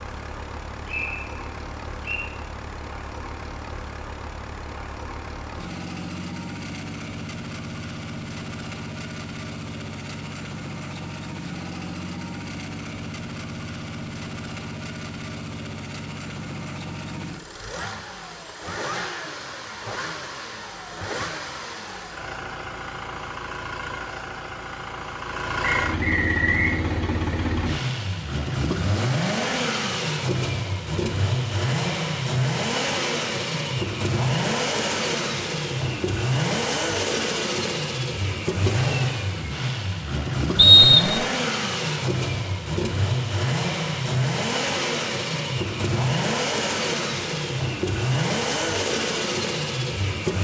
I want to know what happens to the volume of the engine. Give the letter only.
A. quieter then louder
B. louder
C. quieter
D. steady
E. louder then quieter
B.